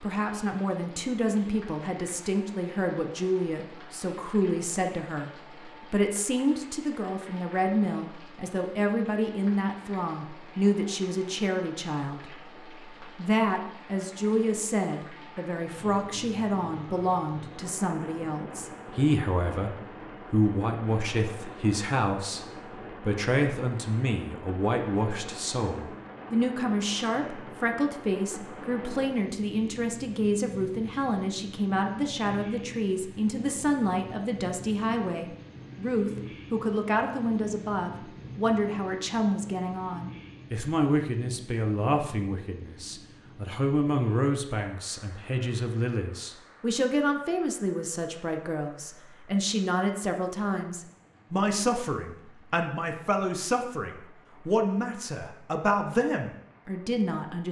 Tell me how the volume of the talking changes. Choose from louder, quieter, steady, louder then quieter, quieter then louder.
steady.